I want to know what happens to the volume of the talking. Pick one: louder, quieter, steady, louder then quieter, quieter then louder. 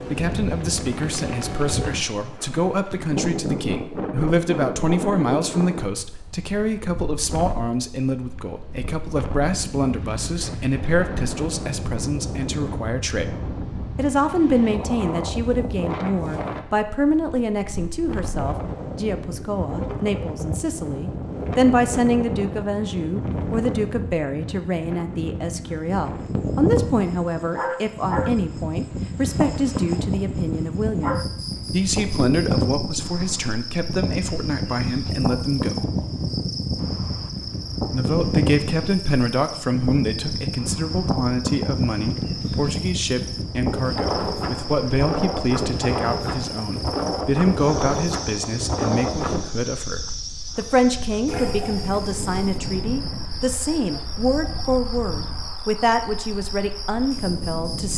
steady.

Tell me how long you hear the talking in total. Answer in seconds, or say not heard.
55 s.